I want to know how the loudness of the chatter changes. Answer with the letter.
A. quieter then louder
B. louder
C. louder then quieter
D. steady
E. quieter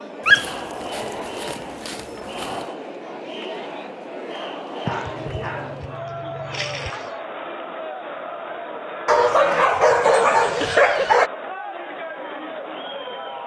D.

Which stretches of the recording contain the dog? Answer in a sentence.
The dog can be heard from 0.2 to 2.6 s, from 4.8 to 7.1 s and from 9.1 to 11.3 s.